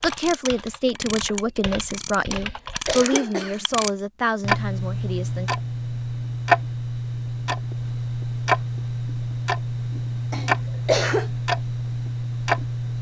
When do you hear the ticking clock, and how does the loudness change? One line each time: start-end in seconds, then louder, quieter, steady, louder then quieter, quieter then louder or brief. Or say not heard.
0.0-12.9 louder.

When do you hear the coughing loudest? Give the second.
11 s.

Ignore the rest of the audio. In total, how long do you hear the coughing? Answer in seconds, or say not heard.
2 s.